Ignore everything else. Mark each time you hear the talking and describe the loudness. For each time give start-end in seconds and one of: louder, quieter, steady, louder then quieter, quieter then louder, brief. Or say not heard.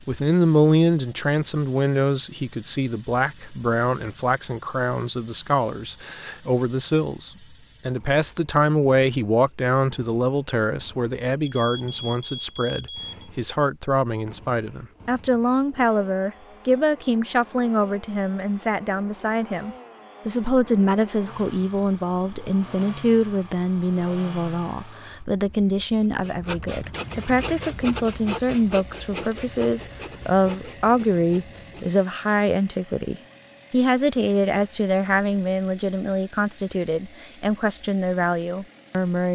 0.1-39.3 steady.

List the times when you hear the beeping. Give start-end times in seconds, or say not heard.
11.4-13.2.